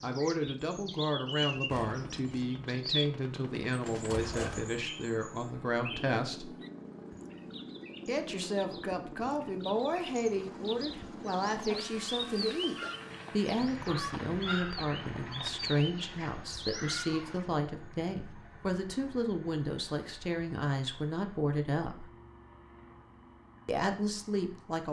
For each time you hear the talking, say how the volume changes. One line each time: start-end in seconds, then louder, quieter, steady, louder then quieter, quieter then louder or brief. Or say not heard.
0.0-6.5 steady
8.1-22.1 steady
23.6-24.8 brief.